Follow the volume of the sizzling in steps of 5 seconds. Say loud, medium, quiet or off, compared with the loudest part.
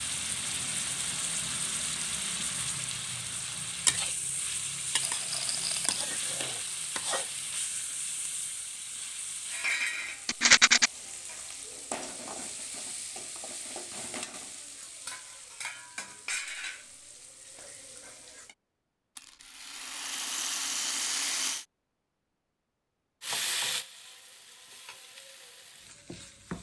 loud, loud, medium, medium, loud, medium.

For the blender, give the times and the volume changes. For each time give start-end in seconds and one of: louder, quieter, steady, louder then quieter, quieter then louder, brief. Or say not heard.
not heard.